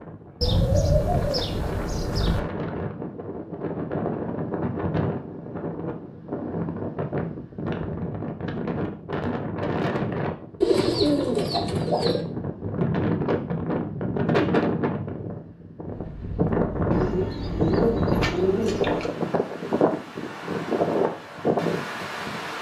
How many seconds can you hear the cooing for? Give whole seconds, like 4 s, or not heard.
6 s.